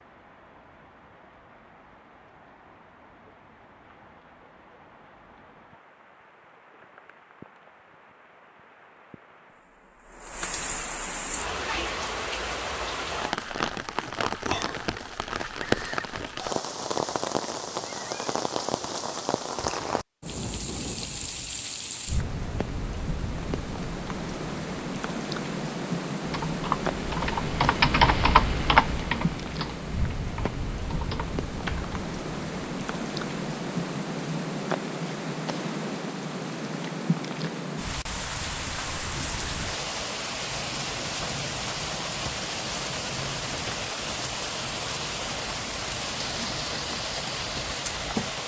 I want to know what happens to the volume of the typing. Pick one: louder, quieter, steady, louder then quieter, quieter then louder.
louder then quieter.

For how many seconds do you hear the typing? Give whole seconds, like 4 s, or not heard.
6 s.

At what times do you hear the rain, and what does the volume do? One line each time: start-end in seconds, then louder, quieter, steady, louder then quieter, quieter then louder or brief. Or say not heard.
0.0-48.4 louder.